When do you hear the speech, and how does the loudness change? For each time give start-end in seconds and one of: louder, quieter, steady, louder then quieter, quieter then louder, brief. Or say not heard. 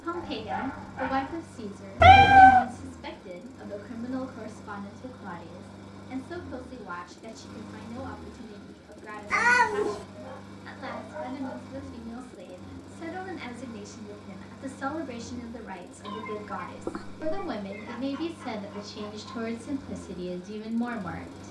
0.0-21.4 quieter then louder.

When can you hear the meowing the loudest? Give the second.
2 s.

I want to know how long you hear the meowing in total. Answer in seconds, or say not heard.
3 s.